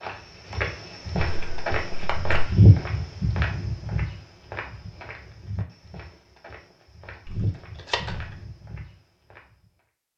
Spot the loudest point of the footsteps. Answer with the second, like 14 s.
3 s.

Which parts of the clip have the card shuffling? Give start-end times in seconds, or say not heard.
1.1-2.5, 7.2-8.3.